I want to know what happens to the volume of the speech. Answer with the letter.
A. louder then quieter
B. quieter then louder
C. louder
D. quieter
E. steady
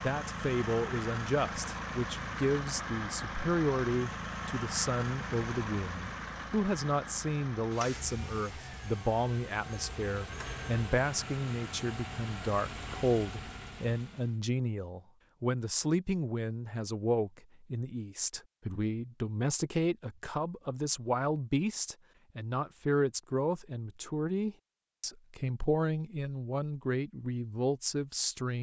E.